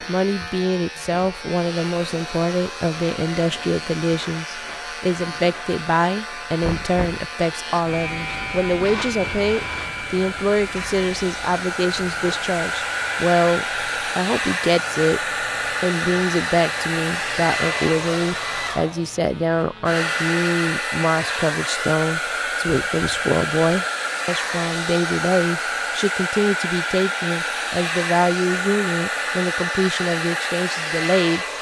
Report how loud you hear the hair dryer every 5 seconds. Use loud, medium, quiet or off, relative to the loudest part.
quiet, quiet, loud, loud, loud, loud, loud.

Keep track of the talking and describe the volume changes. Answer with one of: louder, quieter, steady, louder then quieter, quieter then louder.
steady.